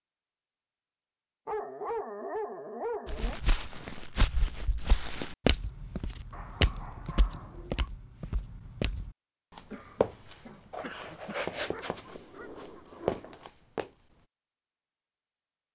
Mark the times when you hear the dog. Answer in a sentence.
The dog can be heard from 1.4 to 3.4 s, from 6.3 to 7.9 s and from 11.6 to 13.5 s.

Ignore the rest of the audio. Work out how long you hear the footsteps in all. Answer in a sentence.
You can hear the footsteps for 11 seconds altogether.